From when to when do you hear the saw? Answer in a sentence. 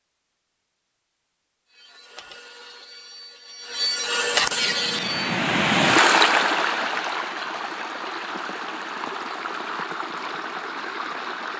You can hear the saw from 1.6 to 5.3 s.